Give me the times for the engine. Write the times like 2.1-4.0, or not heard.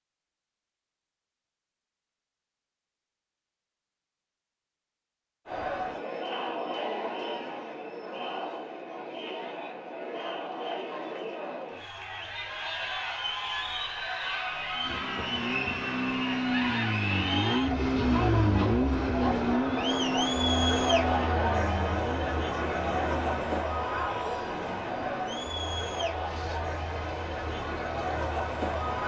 14.8-29.0.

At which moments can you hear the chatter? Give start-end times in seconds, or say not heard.
5.5-29.0.